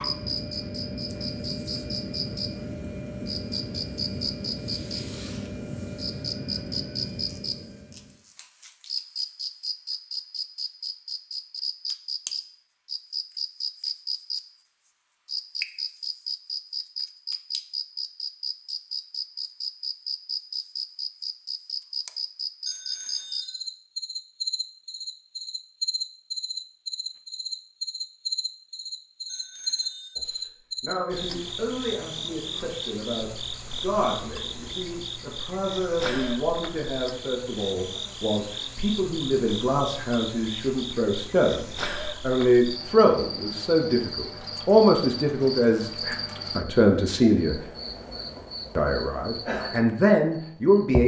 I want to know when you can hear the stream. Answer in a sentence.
The stream can't be heard in this clip.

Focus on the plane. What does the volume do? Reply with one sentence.
The loudness of the plane stays about the same.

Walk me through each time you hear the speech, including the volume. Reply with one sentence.
The speech can be heard from 30.1 to 47.6 s, getting louder; and briefly from 48.8 to 51.0 s.